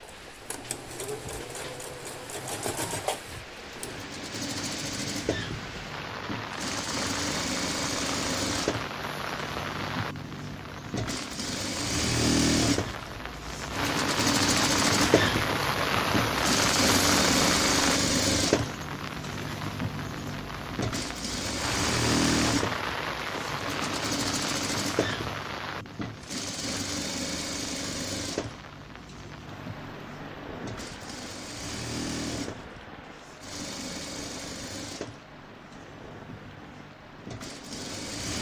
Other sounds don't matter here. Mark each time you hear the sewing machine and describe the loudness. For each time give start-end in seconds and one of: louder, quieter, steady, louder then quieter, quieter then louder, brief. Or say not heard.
0.0-38.3 louder then quieter.